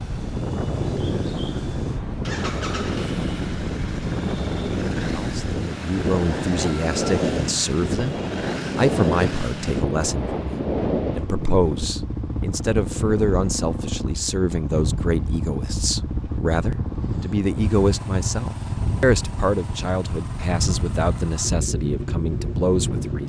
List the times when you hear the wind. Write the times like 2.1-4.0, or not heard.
0.0-23.2.